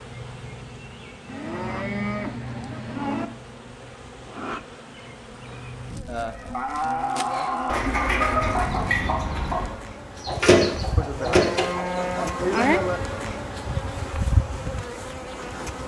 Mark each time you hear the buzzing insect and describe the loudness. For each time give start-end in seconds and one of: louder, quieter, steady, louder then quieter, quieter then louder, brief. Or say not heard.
0.0-15.8 louder.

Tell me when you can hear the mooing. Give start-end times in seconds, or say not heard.
1.2-3.2, 6.0-7.8, 10.9-13.0.